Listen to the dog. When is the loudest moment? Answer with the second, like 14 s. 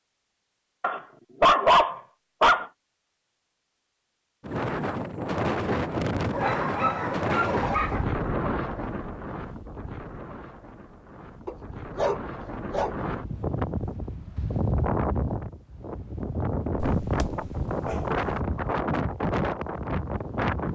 2 s.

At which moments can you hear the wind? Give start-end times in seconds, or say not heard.
4.4-20.7.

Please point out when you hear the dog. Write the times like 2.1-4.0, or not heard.
0.8-2.6, 6.3-8.1, 11.4-12.9, 16.8-18.1.